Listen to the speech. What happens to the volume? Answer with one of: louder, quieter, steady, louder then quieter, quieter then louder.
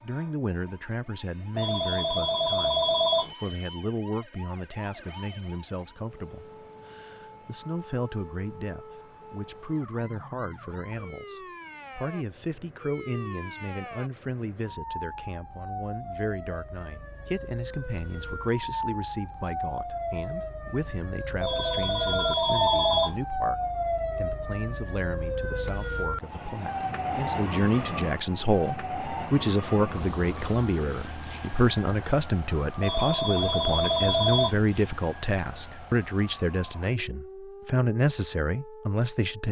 louder.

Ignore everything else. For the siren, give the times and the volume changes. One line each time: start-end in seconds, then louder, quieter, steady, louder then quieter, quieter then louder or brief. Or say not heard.
0.0-39.4 louder then quieter.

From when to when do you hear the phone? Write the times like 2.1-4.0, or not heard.
1.6-3.4, 21.4-23.2, 32.8-34.6.